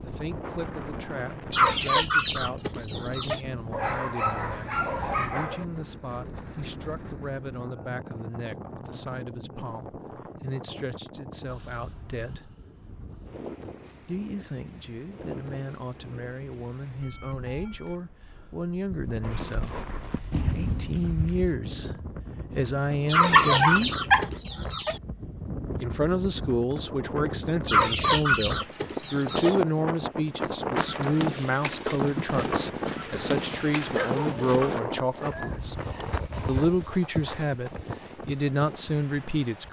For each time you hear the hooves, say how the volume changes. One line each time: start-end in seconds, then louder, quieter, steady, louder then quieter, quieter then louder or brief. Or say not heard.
19.2-21.6 brief
30.8-39.6 quieter.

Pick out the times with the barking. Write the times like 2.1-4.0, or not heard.
3.7-5.7, 23.3-24.2, 33.9-35.7.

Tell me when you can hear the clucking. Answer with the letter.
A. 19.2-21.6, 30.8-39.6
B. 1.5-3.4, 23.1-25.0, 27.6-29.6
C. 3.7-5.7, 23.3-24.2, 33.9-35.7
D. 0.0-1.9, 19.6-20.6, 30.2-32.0
B.